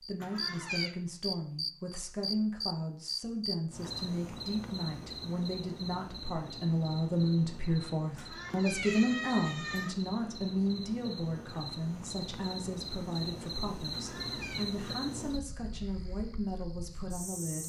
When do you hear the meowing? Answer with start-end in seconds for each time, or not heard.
0.2-0.9, 8.2-9.9, 13.9-14.7.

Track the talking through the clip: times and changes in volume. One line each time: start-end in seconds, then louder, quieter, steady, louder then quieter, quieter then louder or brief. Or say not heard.
0.0-17.6 louder then quieter.